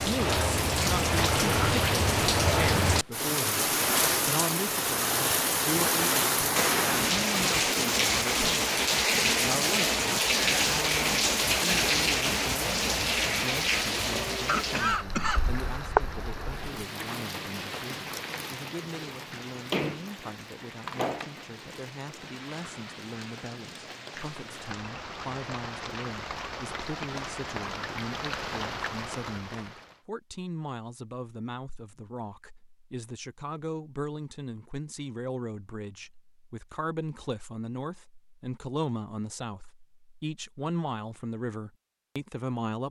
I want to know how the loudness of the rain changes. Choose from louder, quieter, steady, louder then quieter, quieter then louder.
quieter.